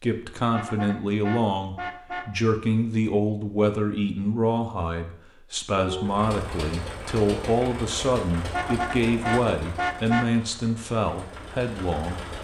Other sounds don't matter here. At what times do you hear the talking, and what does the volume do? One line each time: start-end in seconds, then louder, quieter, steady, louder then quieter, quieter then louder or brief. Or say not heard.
0.0-12.2 steady.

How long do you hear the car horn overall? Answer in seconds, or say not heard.
4 s.